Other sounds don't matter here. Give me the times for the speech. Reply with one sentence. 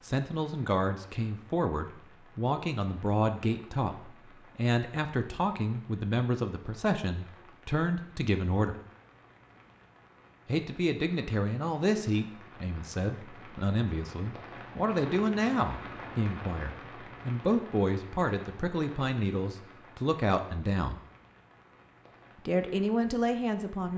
You can hear the speech from 0.1 to 8.8 s, from 10.4 to 21.0 s and from 22.4 to 23.9 s.